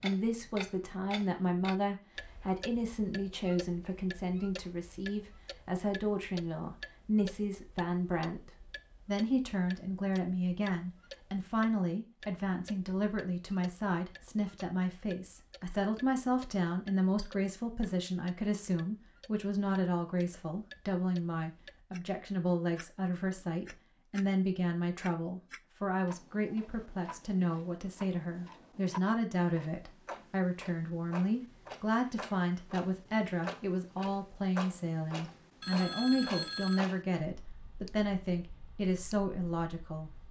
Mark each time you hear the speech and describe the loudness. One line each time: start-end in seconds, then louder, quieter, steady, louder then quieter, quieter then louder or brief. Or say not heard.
0.0-40.1 steady.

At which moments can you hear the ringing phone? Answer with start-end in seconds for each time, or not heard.
35.6-36.8.